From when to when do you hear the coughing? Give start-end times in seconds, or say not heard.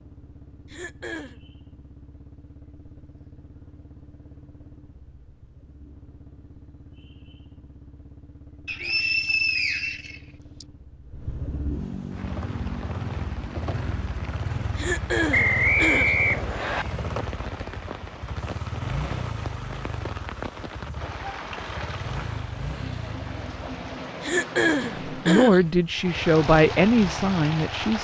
0.7-1.4, 14.8-16.1, 24.2-25.6.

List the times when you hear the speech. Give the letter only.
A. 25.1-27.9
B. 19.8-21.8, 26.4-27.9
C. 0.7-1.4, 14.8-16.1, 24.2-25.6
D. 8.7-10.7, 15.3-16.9
A.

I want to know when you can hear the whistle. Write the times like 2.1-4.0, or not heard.
8.7-10.7, 15.3-16.9.